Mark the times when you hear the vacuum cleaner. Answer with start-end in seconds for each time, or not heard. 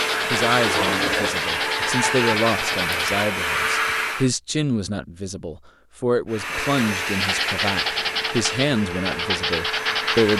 0.0-4.3, 6.3-10.3.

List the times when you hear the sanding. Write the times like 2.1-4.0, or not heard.
0.0-3.1, 7.2-10.3.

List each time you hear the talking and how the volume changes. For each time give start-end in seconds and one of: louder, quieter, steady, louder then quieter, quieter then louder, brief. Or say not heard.
0.3-10.3 steady.